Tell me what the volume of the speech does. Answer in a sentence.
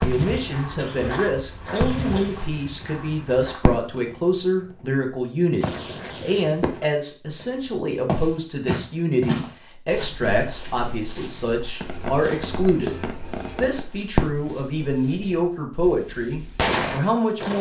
The loudness of the speech stays about the same.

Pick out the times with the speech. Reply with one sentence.
The speech can be heard from 0.0 to 17.5 s.